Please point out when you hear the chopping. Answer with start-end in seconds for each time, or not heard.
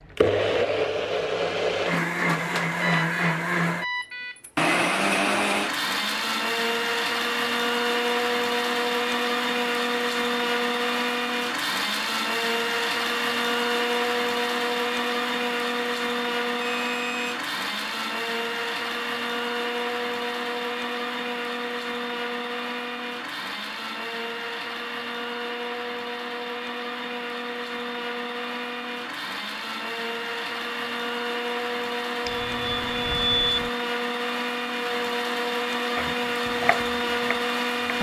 36.0-37.9.